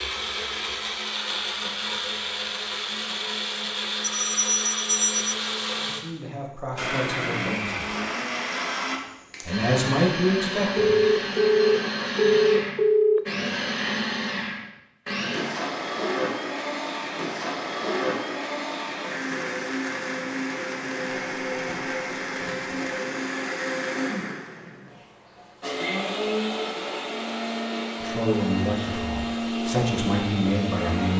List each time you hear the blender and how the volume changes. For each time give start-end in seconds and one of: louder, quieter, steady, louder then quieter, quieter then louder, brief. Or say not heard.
0.0-31.1 steady.